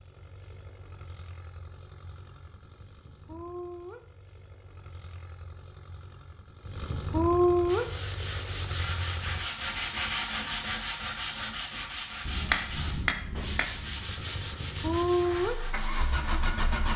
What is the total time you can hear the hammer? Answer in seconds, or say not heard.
2 s.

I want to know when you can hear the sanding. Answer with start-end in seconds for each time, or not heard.
7.7-16.4.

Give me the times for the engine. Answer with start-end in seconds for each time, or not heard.
0.0-9.4, 13.9-16.9.